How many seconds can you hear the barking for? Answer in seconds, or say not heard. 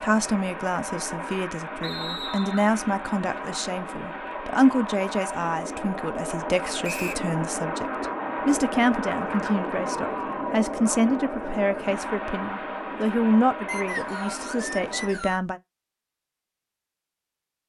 not heard.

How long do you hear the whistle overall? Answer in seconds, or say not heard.
3 s.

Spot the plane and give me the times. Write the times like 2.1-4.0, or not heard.
0.0-15.2.